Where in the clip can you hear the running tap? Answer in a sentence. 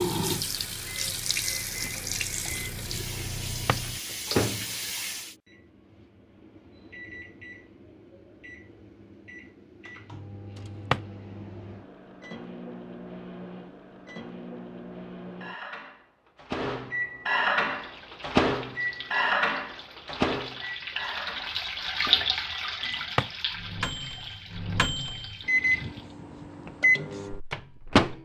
You can hear the running tap from 0.0 to 5.3 s and from 17.6 to 26.1 s.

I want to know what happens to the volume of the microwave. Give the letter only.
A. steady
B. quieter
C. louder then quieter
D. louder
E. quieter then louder
E.